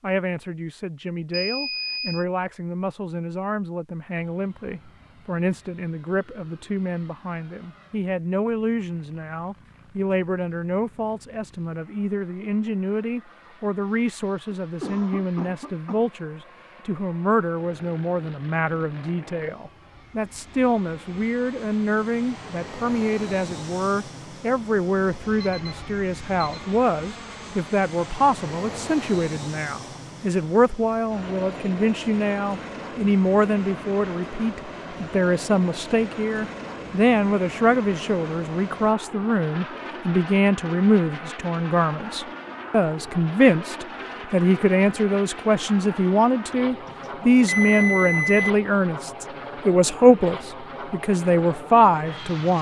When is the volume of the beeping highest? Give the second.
48 s.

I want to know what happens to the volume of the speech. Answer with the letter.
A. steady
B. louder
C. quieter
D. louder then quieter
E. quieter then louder
B.